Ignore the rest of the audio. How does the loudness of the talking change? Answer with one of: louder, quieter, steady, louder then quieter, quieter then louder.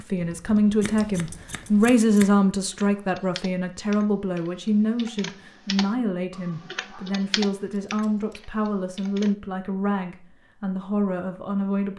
quieter.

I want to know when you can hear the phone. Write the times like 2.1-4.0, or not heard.
not heard.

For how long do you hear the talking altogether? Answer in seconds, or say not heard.
12 s.